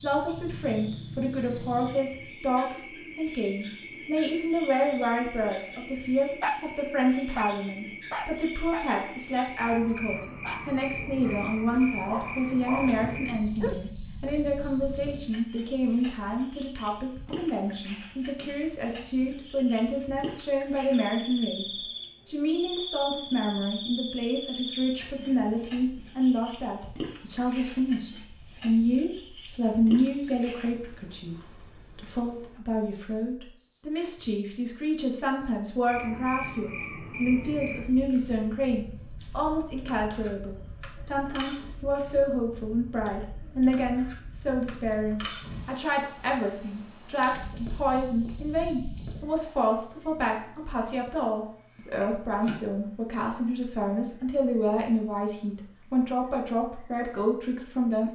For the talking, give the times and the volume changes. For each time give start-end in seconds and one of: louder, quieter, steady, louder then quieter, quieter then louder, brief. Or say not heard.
0.0-58.1 steady.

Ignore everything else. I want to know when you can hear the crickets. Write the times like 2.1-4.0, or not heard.
0.0-58.1.